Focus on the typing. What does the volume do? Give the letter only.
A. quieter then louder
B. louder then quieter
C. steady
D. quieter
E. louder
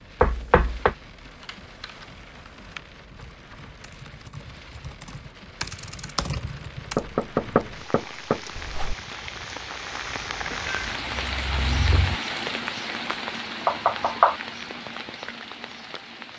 E.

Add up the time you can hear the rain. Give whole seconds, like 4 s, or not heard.
16 s.